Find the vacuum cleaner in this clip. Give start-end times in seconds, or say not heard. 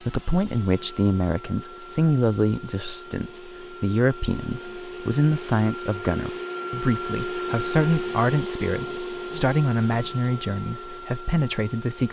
0.0-12.0.